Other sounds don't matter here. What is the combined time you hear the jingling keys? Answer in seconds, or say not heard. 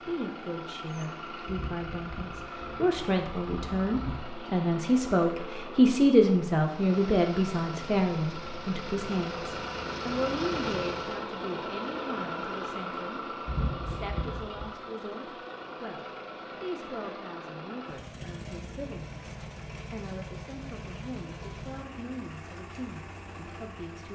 4 s.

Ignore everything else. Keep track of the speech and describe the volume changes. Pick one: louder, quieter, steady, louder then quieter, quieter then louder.
louder then quieter.